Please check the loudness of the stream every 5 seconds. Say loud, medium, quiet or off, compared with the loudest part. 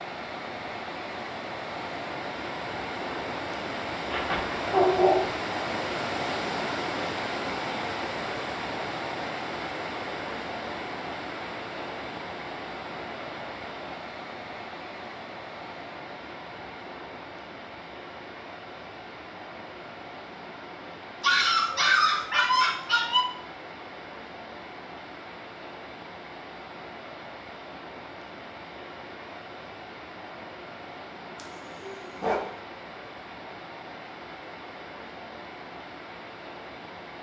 loud, loud, medium, medium, medium, medium, medium, medium.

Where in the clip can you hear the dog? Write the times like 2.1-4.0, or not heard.
4.1-5.3, 21.2-23.2, 31.4-32.6.